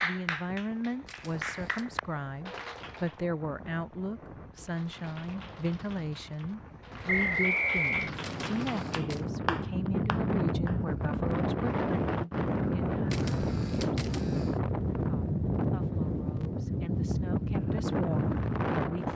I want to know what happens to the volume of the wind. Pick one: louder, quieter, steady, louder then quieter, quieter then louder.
louder.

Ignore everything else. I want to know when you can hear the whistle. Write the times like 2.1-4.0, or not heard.
7.0-8.1.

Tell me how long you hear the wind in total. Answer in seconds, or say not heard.
19 s.